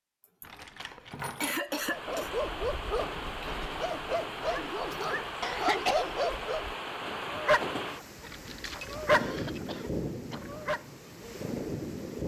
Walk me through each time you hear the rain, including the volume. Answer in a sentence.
You can hear the rain from 1.6 to 12.2 s, at a steady volume.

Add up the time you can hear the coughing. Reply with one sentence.
The coughing can be heard for 4 seconds in total.